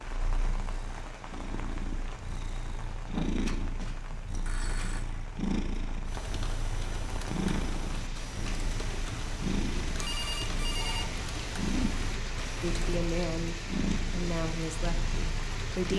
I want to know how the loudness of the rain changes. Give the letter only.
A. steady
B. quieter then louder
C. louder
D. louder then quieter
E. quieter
C.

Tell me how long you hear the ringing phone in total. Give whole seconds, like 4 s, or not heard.
3 s.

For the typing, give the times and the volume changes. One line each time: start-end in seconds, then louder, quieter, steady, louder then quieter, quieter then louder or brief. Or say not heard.
6.0-12.9 steady.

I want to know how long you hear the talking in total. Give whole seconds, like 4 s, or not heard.
3 s.